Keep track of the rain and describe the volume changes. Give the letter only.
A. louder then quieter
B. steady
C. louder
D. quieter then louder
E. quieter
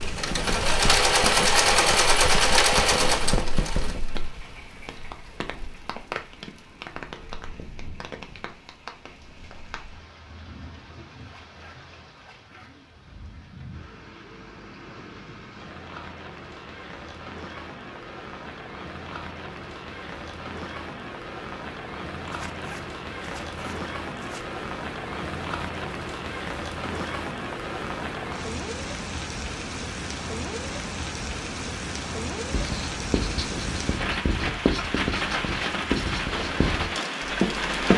D.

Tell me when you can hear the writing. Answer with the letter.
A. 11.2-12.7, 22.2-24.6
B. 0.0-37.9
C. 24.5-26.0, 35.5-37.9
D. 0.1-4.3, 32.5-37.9
D.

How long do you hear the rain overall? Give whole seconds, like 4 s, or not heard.
38 s.